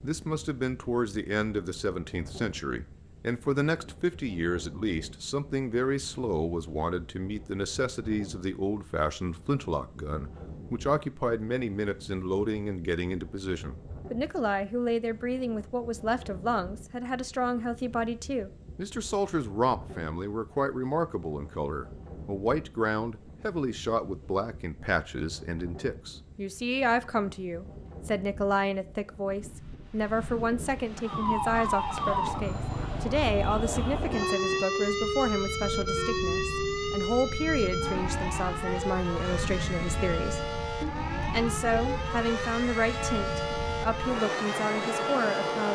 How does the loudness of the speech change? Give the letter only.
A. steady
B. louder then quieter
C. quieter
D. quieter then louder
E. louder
A.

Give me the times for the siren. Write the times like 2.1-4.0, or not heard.
31.0-45.7.